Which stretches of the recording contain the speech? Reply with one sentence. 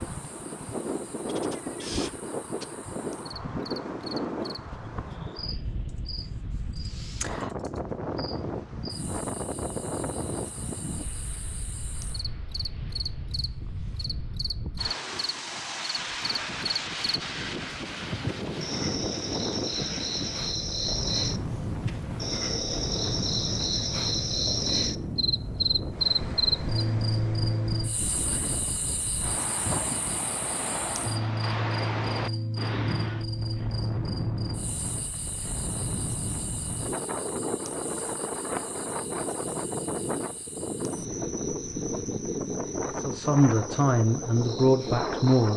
The speech can be heard from 43.0 to 45.5 s.